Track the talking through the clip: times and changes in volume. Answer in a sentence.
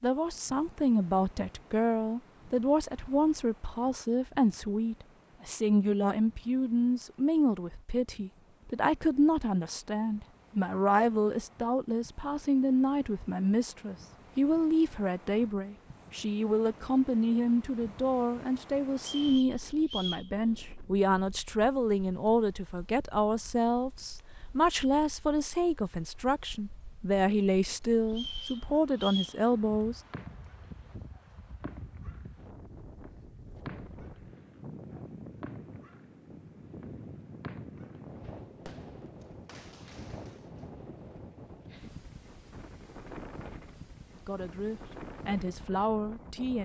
The talking can be heard from 0.0 to 30.0 s, at a steady volume; and briefly from 44.2 to 46.5 s.